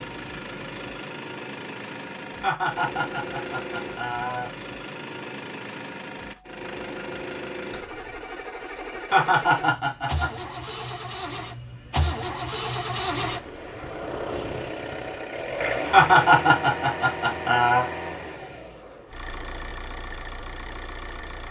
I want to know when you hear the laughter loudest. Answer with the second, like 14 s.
16 s.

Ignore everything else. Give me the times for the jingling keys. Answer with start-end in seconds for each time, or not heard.
7.7-8.3.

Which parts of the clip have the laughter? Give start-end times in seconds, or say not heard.
2.4-4.5, 9.1-10.3, 15.9-17.9.